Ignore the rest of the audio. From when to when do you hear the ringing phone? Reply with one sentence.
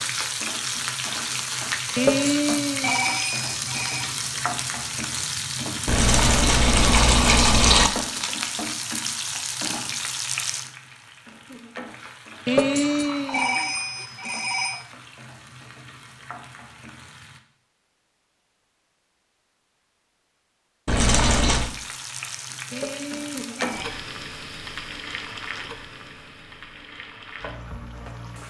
The ringing phone can be heard from 1.9 to 4.1 s, from 12.4 to 14.8 s and from 22.7 to 24.1 s.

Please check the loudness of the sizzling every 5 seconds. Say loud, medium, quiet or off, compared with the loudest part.
loud, loud, medium, quiet, medium, medium.